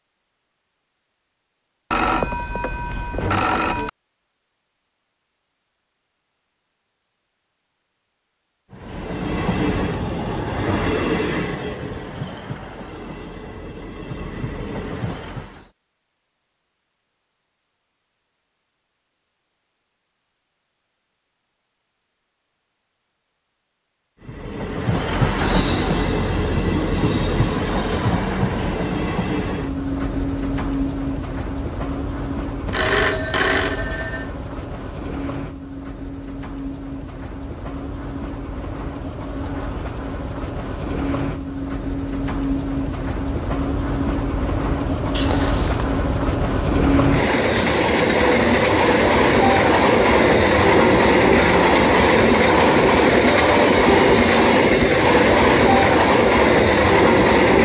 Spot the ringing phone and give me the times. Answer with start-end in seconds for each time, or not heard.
1.9-3.9, 32.6-34.3, 45.1-45.9.